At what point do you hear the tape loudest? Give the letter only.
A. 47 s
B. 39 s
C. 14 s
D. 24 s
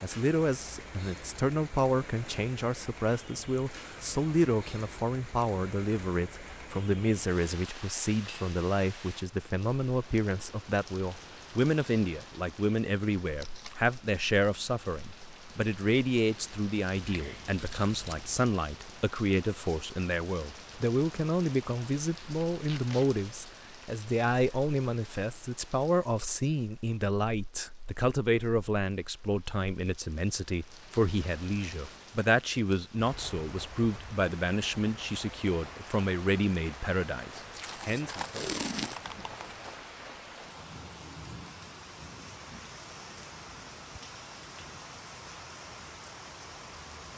B.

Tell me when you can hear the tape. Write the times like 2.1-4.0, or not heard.
13.3-13.8, 22.6-23.1, 37.5-39.2.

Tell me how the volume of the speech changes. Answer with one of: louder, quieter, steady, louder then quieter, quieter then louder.
steady.